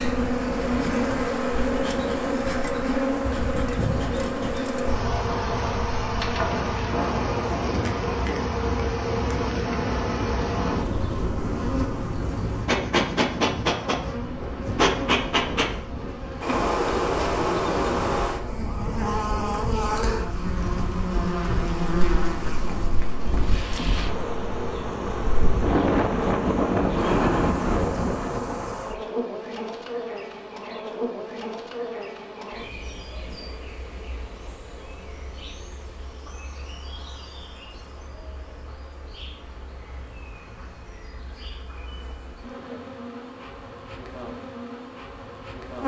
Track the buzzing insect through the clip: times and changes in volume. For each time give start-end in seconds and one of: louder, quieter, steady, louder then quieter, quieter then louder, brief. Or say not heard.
0.0-45.8 quieter.